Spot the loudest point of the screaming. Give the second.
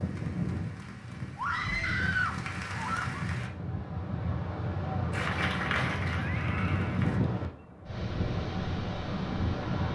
2 s.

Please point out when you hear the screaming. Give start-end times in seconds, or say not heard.
1.4-3.1, 6.2-7.0.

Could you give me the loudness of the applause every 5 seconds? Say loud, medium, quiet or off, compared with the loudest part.
medium, loud.